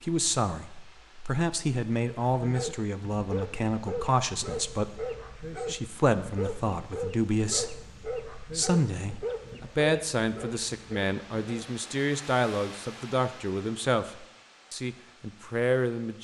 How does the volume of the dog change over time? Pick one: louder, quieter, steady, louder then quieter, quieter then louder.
steady.